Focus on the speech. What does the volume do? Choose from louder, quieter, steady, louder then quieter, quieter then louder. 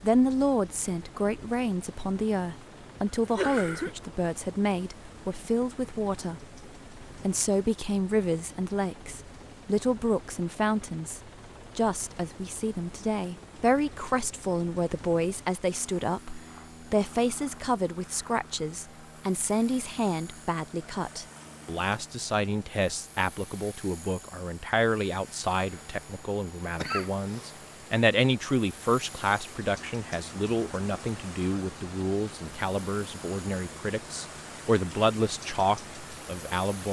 steady.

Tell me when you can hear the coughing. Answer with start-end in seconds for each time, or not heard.
3.1-4.0, 26.8-27.5.